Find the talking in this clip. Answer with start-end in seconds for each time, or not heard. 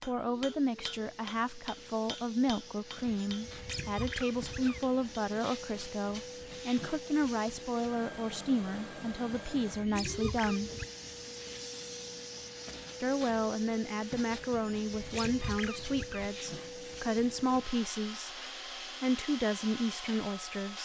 0.0-10.7, 13.0-18.4, 19.0-20.8.